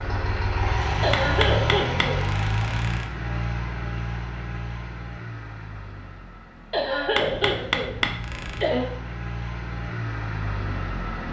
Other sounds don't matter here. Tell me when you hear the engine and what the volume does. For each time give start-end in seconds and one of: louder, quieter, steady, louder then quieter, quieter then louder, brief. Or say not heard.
0.0-11.2 quieter then louder.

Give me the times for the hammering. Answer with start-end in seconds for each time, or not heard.
1.1-3.1, 7.2-8.7.